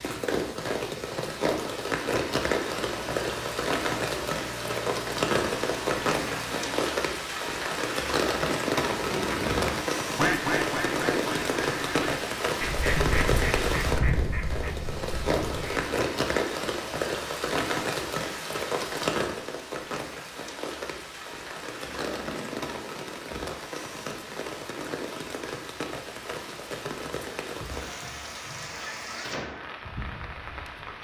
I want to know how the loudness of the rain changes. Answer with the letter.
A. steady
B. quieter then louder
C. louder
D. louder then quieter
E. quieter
E.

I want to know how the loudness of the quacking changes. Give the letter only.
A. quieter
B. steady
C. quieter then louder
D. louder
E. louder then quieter
A.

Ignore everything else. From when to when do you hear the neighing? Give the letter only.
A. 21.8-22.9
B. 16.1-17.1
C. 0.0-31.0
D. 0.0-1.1
A.